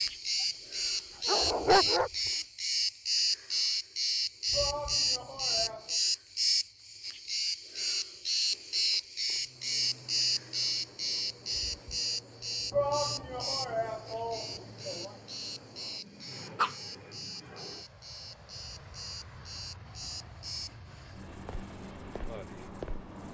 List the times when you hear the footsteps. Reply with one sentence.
You can't hear the footsteps here.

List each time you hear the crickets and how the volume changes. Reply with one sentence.
You can hear the crickets from 0.0 to 23.2 s, getting quieter.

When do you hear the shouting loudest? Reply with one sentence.
The volume of the shouting peaks at 13 seconds.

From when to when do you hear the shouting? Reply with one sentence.
The shouting can be heard from 4.5 to 6.0 s and from 12.7 to 15.2 s.